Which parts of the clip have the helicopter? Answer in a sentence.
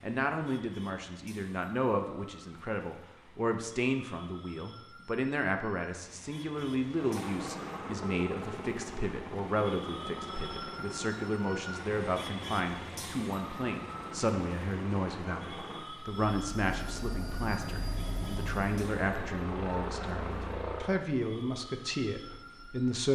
You can hear the helicopter from 6.8 to 21.1 s.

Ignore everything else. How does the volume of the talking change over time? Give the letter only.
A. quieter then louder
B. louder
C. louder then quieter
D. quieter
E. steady
E.